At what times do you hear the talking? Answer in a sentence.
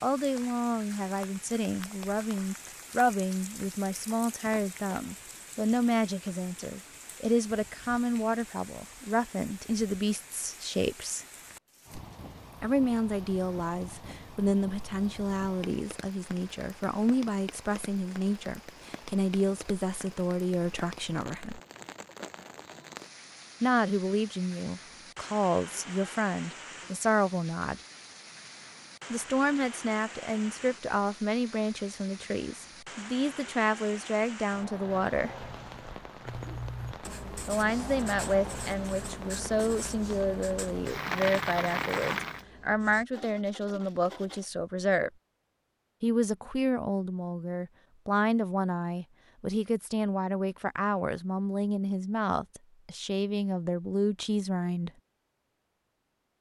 You can hear the talking from 0.0 to 11.2 s, from 12.6 to 21.6 s, from 23.6 to 27.8 s, from 29.1 to 35.4 s, from 37.5 to 45.1 s and from 46.0 to 54.9 s.